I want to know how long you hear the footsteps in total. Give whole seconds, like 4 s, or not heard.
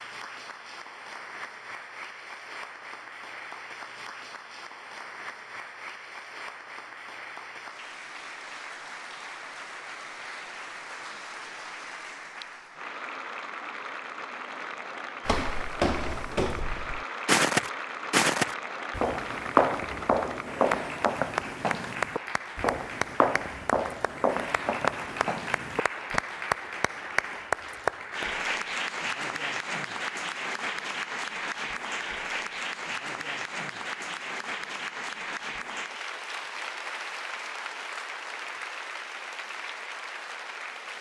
11 s.